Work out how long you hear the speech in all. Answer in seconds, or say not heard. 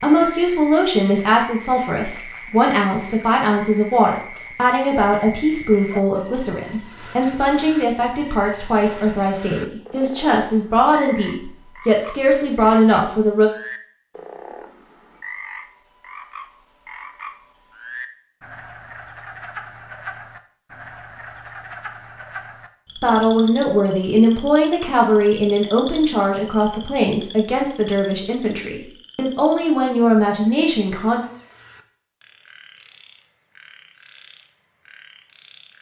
22 s.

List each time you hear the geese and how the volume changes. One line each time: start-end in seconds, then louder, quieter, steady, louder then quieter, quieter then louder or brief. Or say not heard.
not heard.